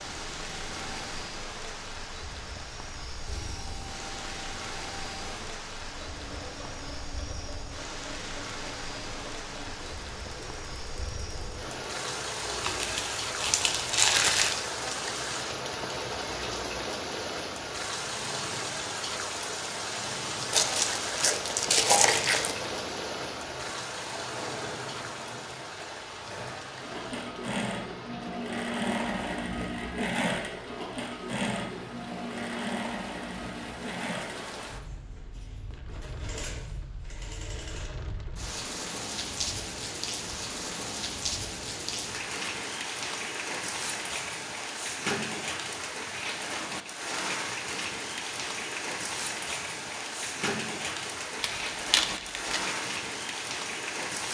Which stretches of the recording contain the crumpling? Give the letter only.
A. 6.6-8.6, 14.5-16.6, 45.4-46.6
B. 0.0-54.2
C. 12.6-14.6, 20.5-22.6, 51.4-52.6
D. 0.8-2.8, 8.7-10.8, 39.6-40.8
C.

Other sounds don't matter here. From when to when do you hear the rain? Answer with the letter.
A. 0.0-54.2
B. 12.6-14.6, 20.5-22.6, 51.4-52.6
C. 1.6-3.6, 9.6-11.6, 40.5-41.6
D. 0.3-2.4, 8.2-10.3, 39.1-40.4
A.